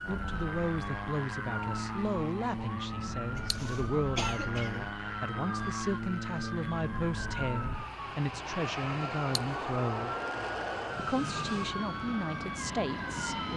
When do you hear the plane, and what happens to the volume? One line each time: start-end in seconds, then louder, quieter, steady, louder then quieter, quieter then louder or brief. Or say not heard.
0.0-13.5 steady.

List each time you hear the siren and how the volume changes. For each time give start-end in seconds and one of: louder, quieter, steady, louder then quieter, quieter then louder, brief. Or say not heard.
0.0-13.5 steady.